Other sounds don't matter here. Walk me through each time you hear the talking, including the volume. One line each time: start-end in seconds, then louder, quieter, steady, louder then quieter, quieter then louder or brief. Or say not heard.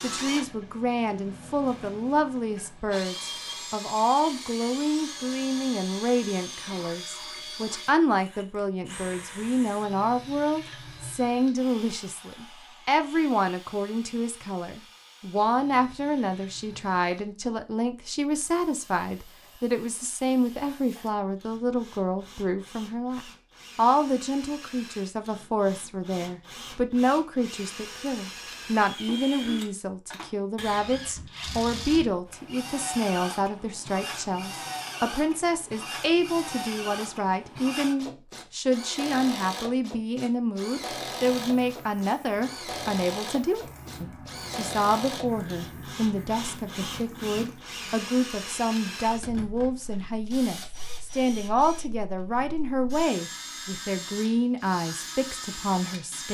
0.0-56.2 steady.